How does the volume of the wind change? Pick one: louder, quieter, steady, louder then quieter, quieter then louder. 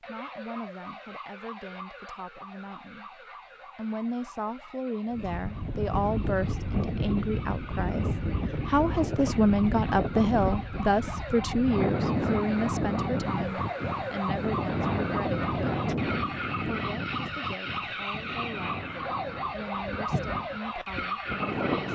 quieter.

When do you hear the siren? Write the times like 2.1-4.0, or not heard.
0.0-21.9.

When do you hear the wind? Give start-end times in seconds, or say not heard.
5.1-21.9.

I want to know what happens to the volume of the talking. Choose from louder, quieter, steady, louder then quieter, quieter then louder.
louder then quieter.